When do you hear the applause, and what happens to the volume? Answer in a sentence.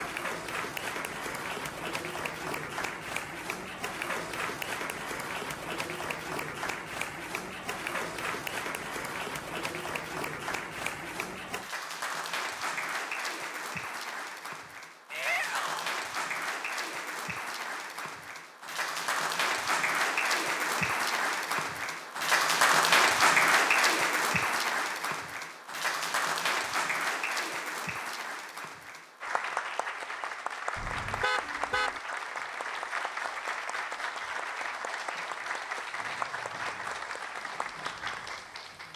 You can hear the applause from 0.0 to 38.9 s, getting louder then quieter.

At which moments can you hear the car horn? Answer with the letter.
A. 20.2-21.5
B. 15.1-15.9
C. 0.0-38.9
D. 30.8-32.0
D.